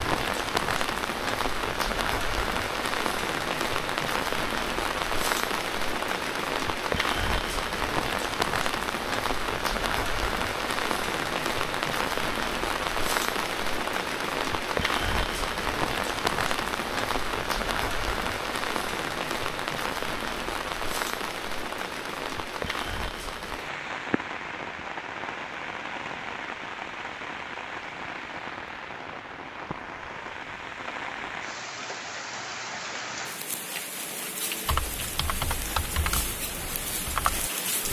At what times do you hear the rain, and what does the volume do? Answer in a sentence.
You can hear the rain from 0.0 to 37.8 s, getting quieter.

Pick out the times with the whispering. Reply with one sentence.
The whispering can't be heard in this clip.